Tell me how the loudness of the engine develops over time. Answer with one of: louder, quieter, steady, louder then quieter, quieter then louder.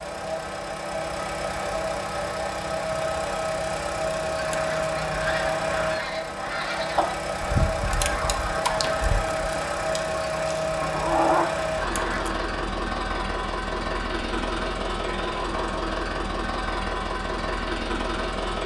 steady.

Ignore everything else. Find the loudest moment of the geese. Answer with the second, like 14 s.
11 s.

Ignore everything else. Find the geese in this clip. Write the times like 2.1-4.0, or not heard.
4.3-12.5.